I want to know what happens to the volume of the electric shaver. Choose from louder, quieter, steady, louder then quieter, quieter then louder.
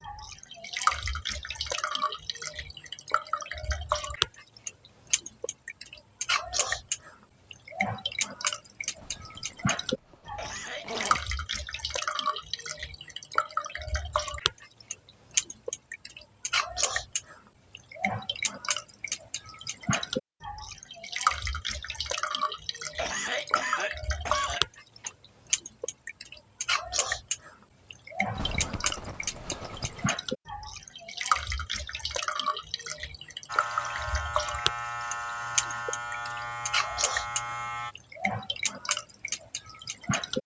steady.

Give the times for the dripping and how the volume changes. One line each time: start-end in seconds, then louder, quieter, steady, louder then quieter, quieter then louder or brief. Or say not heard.
0.0-40.4 steady.